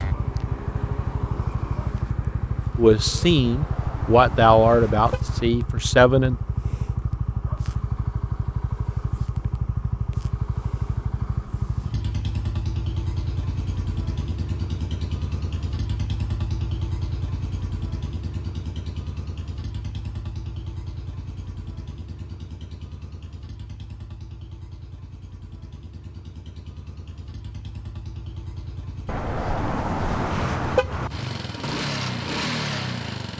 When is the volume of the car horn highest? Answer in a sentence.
The volume of the car horn peaks at 31 seconds.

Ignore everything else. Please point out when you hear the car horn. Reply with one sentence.
You can hear the car horn from 3.4 to 5.5 s and from 29.1 to 31.1 s.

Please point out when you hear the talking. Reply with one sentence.
You can hear the talking from 2.8 to 6.3 s.